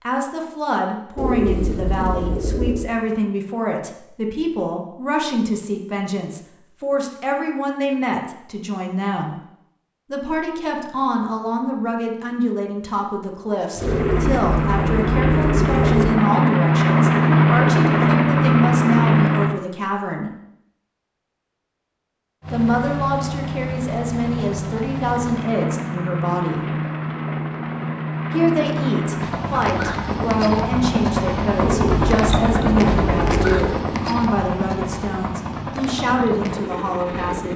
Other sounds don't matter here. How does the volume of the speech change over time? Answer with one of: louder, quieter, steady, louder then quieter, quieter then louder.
steady.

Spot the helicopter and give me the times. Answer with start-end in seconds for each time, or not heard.
13.8-19.6, 22.4-37.5.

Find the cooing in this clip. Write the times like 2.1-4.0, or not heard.
1.1-2.9, 13.8-16.1, 31.6-33.8.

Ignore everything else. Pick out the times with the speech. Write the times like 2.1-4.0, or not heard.
0.0-9.3, 10.1-20.3, 22.5-26.7, 28.3-37.5.